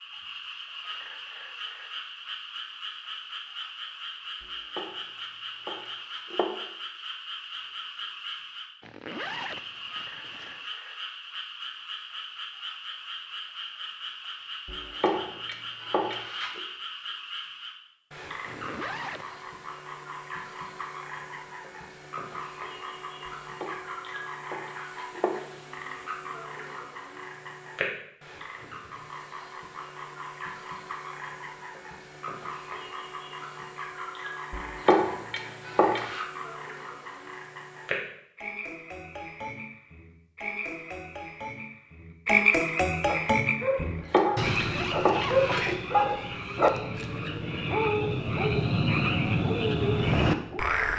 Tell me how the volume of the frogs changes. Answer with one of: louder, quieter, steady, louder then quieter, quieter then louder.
louder.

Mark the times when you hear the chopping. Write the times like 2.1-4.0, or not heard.
4.8-6.5, 14.7-16.6, 23.6-25.4, 34.5-36.2, 43.8-45.8.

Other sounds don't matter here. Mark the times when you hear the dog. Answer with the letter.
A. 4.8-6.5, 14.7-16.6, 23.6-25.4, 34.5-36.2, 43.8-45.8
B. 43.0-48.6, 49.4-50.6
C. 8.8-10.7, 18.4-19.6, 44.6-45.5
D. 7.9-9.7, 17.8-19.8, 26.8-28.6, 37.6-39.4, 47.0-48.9
B.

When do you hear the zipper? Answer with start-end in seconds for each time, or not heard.
8.8-10.7, 18.4-19.6, 44.6-45.5.